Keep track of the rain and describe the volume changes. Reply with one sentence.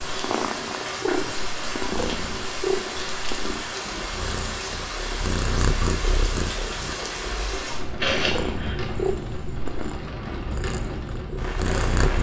The volume of the rain stays about the same.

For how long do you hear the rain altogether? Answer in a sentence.
The rain can be heard for 12 seconds in total.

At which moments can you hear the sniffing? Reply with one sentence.
You can hear the sniffing from 8.0 to 8.8 s.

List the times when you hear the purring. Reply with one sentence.
The purring can be heard from 0.1 to 12.1 s.